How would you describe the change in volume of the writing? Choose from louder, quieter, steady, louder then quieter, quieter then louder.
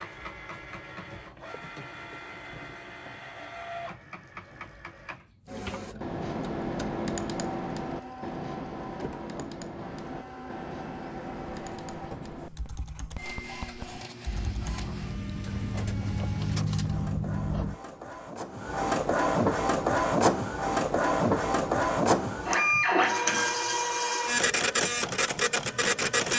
louder.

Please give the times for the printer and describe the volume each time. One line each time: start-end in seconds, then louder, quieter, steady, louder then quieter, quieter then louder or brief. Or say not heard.
0.0-26.3 louder.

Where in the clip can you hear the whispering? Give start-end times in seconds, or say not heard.
not heard.